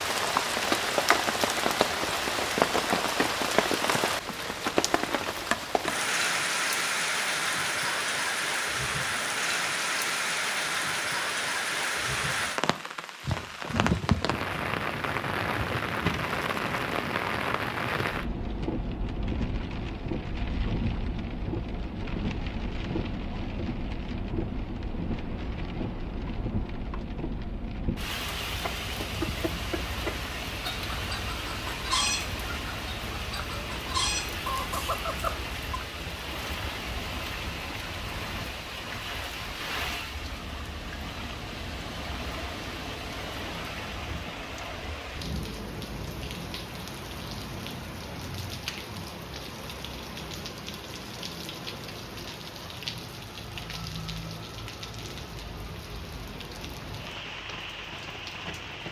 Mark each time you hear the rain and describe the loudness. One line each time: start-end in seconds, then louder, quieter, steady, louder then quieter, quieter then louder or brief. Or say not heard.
0.0-58.8 quieter.